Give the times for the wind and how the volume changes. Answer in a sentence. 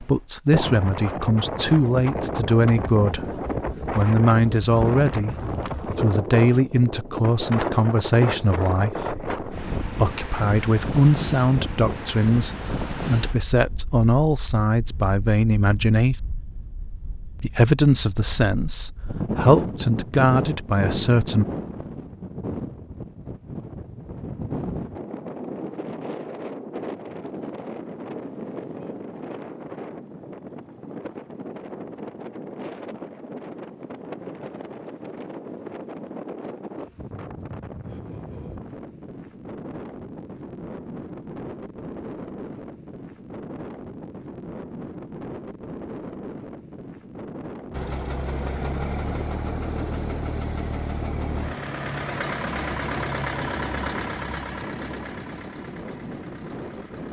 The wind can be heard from 0.0 to 57.0 s, getting quieter.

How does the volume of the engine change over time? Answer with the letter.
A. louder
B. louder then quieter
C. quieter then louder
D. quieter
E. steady
D.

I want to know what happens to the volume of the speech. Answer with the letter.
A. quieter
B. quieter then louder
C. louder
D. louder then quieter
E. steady
E.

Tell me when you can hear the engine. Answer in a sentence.
The engine can be heard from 47.7 to 57.0 s.